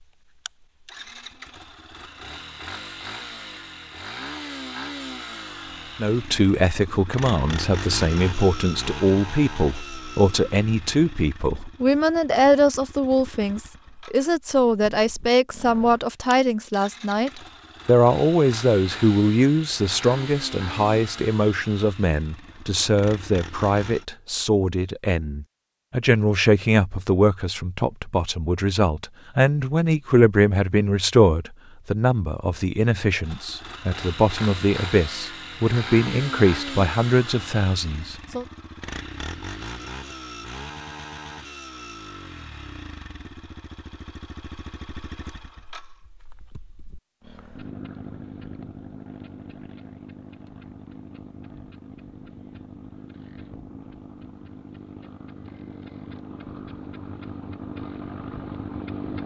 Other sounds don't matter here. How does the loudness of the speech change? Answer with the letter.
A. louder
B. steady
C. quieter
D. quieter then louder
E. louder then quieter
B.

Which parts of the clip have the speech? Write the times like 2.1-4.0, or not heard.
6.0-38.5.